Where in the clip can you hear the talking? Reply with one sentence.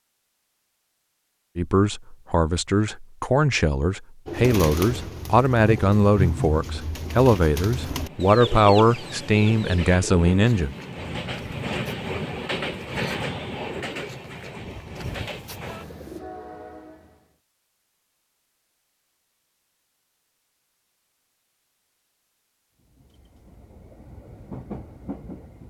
You can hear the talking from 1.6 to 10.8 s.